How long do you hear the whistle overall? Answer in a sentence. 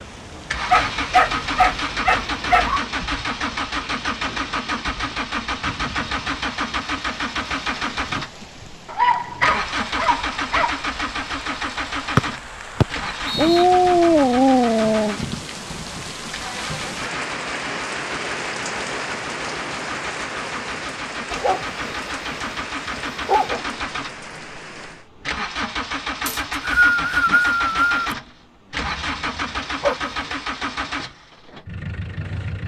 The whistle can be heard for 3 seconds in total.